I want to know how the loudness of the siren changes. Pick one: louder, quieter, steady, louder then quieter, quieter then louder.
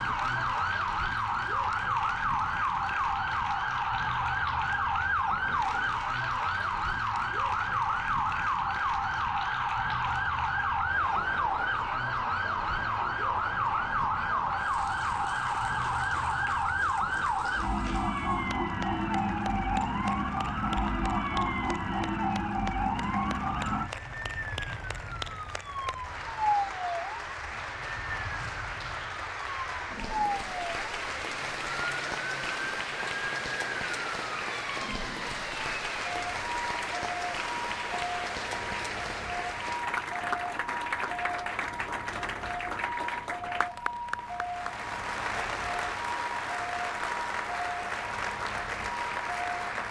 quieter.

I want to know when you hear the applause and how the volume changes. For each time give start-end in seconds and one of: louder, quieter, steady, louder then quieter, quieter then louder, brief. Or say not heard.
0.0-49.8 louder.